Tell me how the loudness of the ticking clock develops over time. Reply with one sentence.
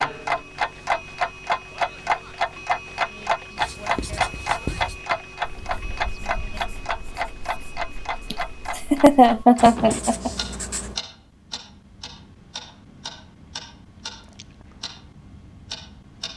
The volume of the ticking clock goes down.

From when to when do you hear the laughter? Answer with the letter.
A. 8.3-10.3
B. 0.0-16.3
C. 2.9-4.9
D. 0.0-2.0
A.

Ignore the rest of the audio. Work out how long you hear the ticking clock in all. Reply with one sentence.
You can hear the ticking clock for 16 seconds altogether.